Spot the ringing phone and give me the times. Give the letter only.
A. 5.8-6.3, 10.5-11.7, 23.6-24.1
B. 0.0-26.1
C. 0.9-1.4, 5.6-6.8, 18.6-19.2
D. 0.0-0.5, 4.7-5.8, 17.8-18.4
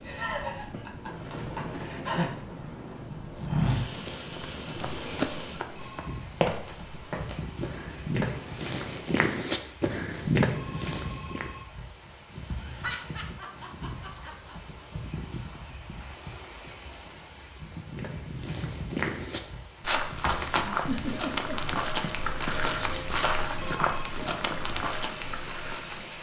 A.